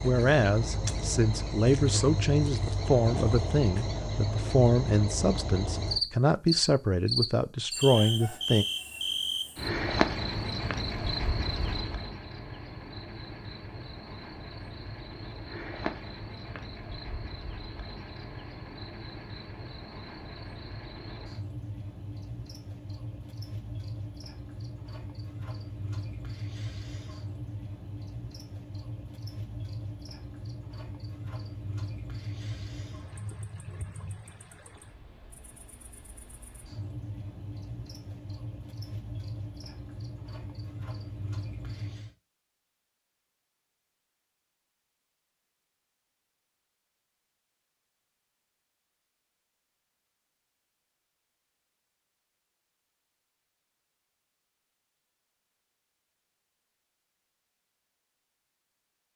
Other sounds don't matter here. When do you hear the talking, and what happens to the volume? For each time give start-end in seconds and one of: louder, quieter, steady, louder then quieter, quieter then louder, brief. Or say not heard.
0.0-8.7 steady.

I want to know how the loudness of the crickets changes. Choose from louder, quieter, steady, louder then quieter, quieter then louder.
quieter.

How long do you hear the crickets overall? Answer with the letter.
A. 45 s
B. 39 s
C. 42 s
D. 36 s
C.